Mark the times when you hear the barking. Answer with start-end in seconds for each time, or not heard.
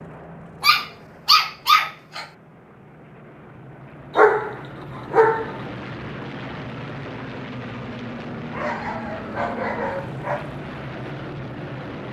0.6-2.2, 4.2-5.5, 8.5-10.5.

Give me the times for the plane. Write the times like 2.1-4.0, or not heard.
0.0-12.0.